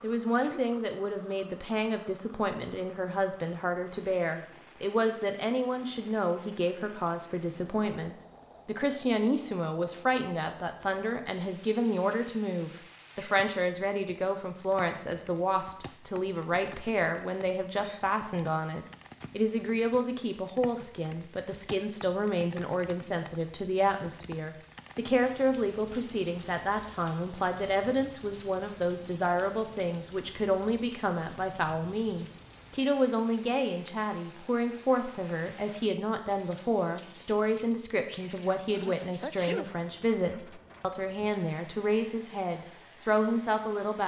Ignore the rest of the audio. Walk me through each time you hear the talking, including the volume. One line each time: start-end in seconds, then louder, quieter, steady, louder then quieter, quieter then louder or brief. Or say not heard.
0.0-44.0 steady.